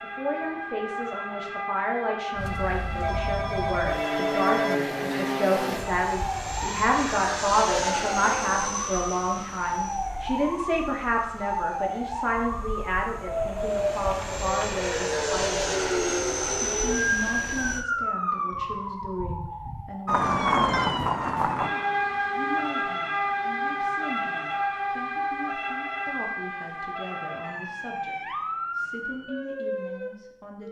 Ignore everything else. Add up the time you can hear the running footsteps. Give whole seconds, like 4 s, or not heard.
not heard.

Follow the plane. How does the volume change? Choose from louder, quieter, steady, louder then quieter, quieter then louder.
quieter then louder.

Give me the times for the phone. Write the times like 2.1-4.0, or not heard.
3.0-4.8, 20.2-20.9.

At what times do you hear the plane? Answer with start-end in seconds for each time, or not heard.
2.4-17.9.